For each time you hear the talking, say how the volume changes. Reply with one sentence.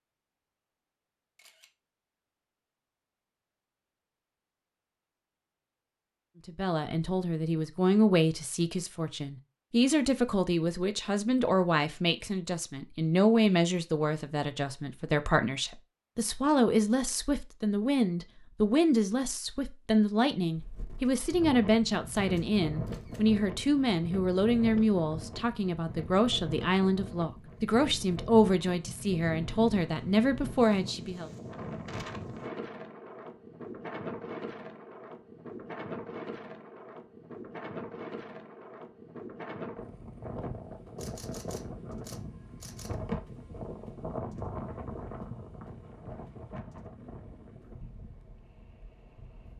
You can hear the talking from 6.5 to 31.3 s, at a steady volume.